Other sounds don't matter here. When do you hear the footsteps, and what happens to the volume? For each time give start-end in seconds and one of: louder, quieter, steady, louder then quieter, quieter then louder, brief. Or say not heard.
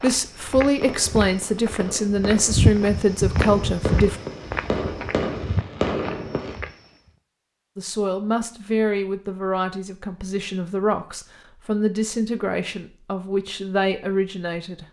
0.0-7.1 louder then quieter.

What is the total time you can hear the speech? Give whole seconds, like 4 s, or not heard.
11 s.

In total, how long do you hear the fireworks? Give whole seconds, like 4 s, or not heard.
6 s.